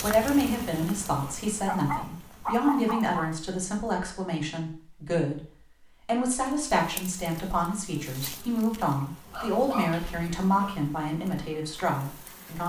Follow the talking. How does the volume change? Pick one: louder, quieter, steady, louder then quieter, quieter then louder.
steady.